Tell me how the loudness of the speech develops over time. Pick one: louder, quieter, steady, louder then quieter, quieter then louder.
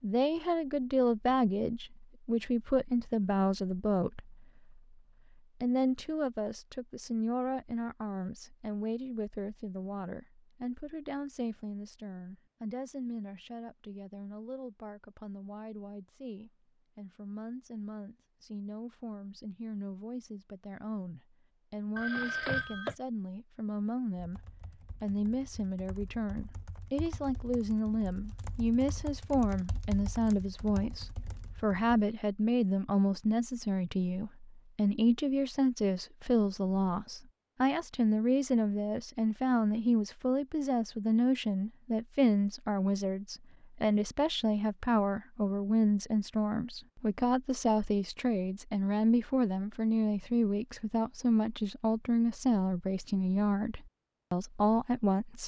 quieter then louder.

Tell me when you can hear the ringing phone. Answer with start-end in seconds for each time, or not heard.
21.9-22.9.